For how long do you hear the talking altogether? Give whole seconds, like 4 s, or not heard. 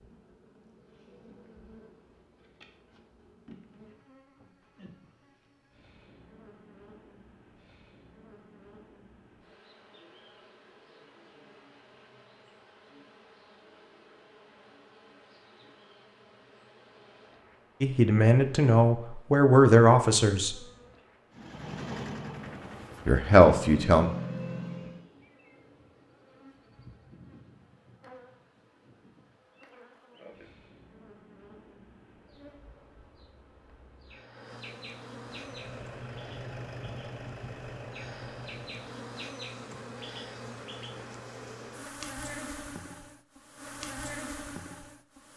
4 s.